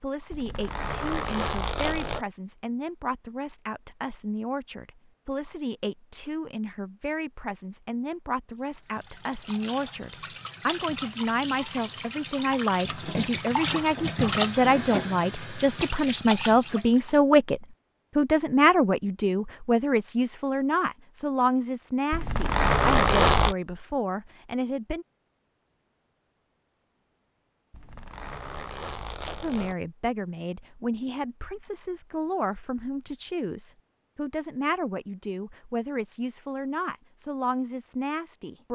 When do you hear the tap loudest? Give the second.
14 s.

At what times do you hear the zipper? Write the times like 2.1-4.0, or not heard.
0.3-2.2, 22.1-23.6, 27.7-29.8.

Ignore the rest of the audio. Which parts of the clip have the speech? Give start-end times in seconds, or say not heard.
0.0-25.1, 29.4-38.7.